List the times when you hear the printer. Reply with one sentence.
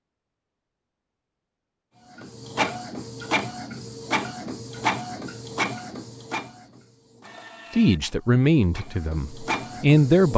You can hear the printer from 2.1 to 10.3 s.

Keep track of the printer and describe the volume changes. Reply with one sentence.
The loudness of the printer goes down, then up.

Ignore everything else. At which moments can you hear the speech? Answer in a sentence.
The speech can be heard from 7.8 to 10.3 s.